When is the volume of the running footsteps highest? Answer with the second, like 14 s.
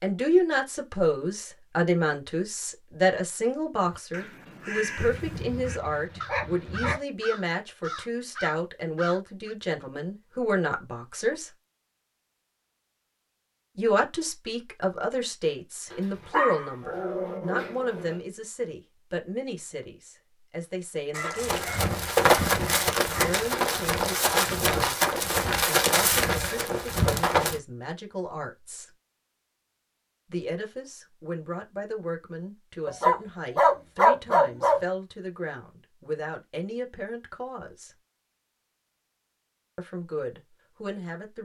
22 s.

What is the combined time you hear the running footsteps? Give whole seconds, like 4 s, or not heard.
6 s.